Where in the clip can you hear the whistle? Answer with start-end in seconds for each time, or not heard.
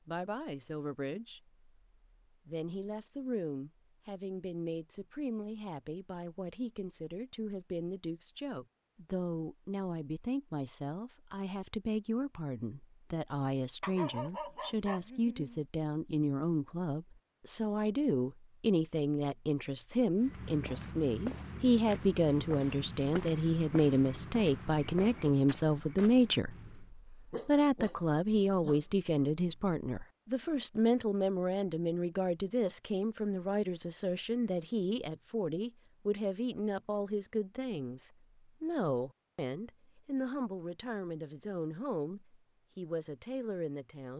not heard.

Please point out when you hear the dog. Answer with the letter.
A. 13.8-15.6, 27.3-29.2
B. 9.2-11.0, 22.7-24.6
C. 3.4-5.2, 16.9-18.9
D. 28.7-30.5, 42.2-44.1
A.